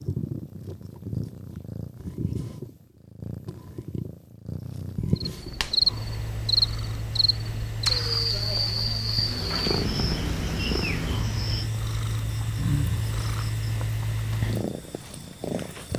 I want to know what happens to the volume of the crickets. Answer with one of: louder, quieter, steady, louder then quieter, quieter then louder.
quieter.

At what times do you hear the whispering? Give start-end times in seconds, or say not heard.
not heard.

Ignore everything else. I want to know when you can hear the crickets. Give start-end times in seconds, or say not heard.
5.2-15.9.